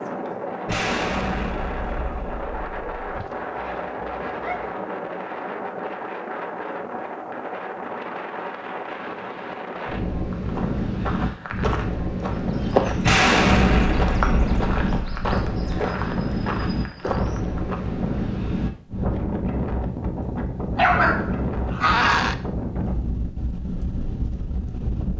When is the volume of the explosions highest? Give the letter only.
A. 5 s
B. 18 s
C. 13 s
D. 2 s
C.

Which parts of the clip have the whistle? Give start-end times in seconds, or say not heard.
not heard.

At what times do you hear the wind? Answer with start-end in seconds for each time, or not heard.
0.0-25.1.